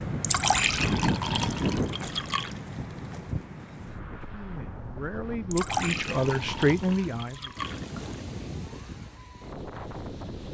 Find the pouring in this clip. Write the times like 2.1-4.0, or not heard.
0.2-2.5, 5.5-8.1.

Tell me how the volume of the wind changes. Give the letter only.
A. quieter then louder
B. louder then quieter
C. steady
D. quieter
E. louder
D.